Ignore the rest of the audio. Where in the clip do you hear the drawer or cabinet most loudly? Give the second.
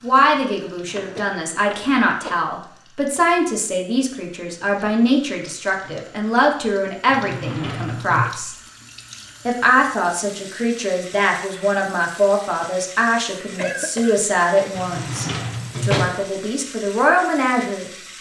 16 s.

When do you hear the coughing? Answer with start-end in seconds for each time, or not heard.
1.1-2.5, 13.2-14.2.